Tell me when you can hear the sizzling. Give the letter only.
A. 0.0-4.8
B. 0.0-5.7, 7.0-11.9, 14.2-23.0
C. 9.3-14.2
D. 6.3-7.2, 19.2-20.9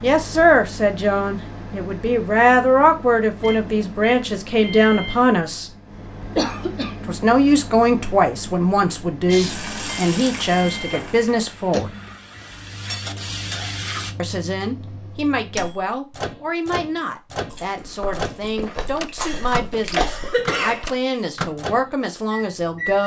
C.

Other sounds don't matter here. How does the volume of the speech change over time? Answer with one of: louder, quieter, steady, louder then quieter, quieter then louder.
quieter.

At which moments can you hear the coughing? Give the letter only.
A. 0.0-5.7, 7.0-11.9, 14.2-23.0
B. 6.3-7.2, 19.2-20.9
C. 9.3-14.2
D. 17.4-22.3
B.